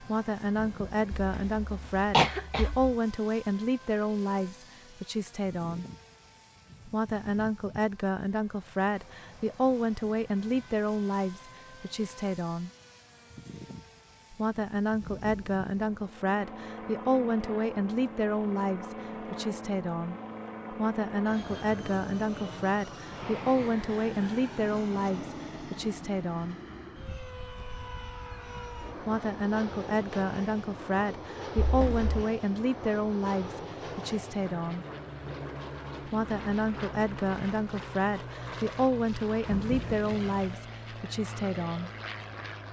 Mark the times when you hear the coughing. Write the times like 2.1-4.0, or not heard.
1.1-2.9, 31.6-32.1.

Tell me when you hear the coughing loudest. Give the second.
2 s.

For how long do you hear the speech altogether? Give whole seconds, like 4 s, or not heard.
36 s.